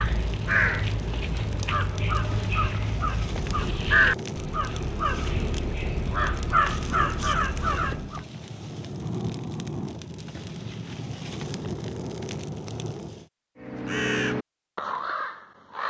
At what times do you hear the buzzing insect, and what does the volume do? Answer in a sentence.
You can't hear the buzzing insect here.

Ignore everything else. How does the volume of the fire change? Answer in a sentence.
The loudness of the fire stays about the same.